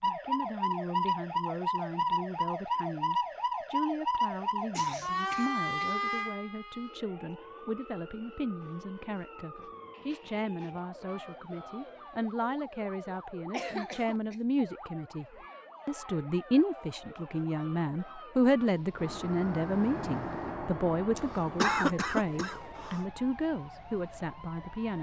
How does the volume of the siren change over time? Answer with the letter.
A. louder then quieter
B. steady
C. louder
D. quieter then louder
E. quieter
E.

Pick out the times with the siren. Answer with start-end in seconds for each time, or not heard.
0.0-24.9.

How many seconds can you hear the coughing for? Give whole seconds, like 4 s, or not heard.
4 s.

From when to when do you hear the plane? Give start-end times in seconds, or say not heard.
18.9-21.9.